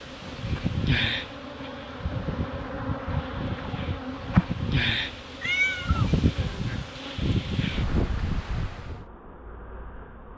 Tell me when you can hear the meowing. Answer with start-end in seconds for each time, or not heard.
5.4-6.2.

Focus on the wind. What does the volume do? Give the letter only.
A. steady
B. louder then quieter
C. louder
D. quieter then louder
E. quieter
D.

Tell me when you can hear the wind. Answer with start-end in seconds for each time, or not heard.
0.0-9.1.